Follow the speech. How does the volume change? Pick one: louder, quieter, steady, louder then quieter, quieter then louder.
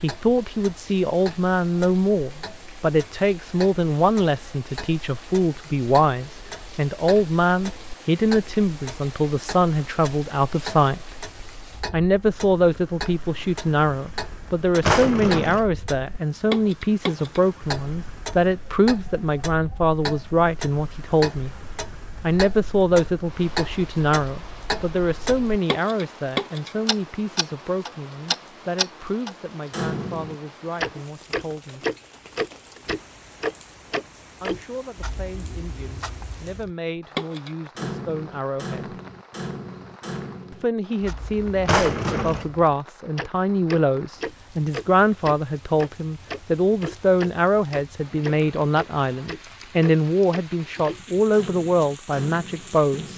quieter then louder.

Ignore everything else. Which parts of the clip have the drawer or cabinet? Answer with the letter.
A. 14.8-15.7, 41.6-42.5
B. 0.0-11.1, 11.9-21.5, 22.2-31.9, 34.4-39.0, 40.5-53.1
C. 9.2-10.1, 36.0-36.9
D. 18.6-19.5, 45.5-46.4
A.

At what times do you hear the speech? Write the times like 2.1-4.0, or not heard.
0.0-11.1, 11.9-21.5, 22.2-31.9, 34.4-39.0, 40.5-53.1.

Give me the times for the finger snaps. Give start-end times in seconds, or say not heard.
not heard.